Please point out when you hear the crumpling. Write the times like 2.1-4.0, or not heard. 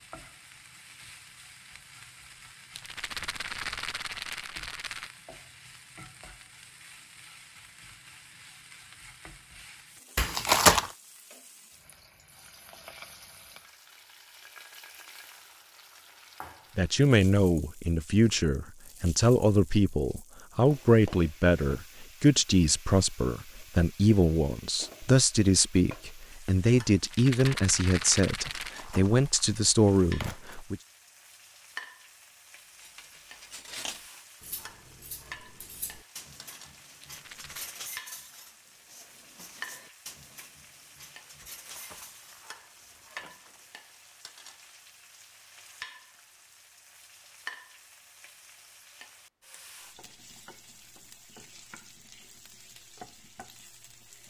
10.2-10.9, 28.4-30.6, 41.4-43.6.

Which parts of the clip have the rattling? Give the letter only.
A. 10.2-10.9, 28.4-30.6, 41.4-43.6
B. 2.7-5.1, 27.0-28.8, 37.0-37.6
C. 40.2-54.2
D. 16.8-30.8
B.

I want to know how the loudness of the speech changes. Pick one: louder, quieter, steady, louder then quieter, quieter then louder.
steady.